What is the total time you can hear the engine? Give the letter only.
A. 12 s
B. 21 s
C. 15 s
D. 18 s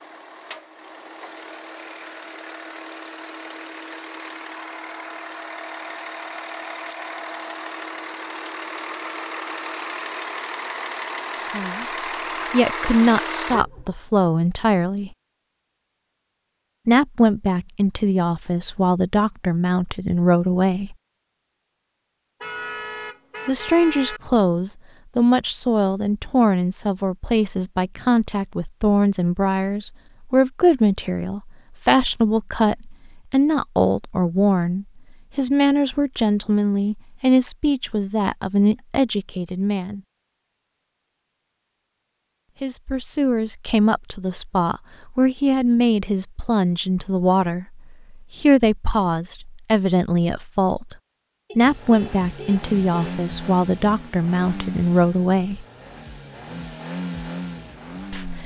B.